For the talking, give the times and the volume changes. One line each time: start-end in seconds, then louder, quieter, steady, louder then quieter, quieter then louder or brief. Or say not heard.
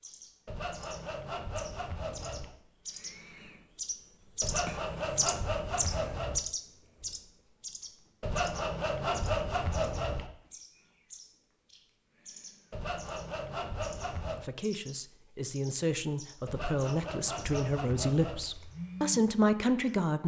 14.3-20.2 louder.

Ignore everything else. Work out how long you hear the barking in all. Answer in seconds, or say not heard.
not heard.